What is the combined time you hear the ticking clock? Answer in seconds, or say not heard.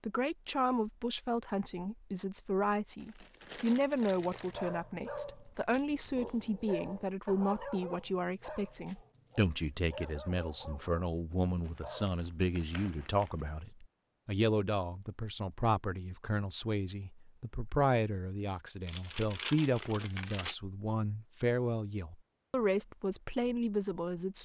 not heard.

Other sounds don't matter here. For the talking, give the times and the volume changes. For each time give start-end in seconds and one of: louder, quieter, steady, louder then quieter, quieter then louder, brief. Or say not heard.
0.0-24.4 steady.